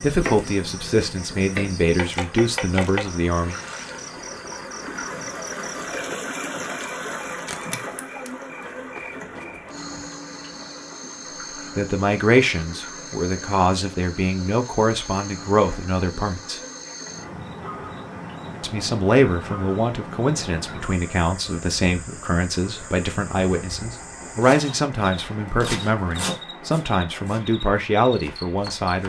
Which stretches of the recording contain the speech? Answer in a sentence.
You can hear the speech from 0.0 to 3.5 s, from 11.8 to 16.6 s and from 18.6 to 29.0 s.